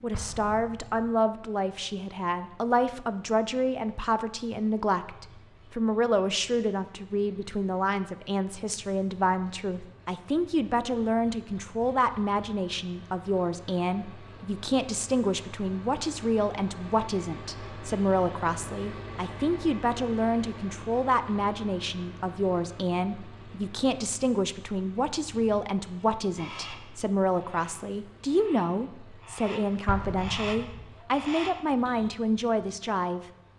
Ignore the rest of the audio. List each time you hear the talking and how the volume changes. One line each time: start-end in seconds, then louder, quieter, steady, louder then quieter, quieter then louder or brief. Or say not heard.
0.0-33.2 steady.